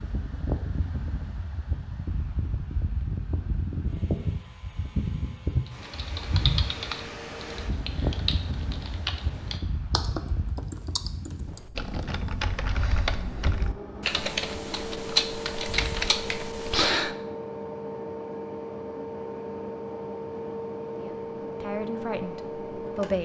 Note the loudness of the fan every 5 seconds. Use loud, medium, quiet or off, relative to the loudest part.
loud, loud, medium, loud, loud.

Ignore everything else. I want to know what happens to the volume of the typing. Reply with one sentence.
The volume of the typing goes up.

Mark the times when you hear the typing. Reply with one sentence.
The typing can be heard from 5.7 to 17.1 s.